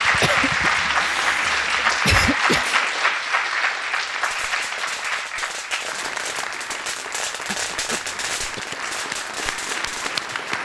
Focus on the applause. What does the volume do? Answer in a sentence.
The volume of the applause goes down.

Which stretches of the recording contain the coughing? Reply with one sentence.
You can hear the coughing from 0.2 to 2.6 s and from 7.5 to 8.6 s.